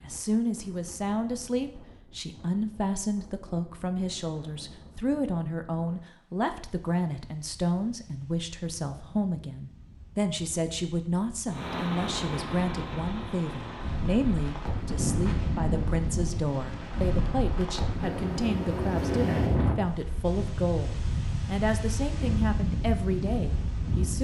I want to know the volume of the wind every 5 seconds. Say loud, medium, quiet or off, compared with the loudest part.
quiet, quiet, medium, loud, loud.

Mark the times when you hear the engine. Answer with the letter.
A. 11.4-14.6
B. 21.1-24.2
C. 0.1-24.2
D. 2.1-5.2
A.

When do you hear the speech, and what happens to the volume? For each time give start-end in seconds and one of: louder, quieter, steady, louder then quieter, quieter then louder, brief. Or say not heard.
0.1-24.2 steady.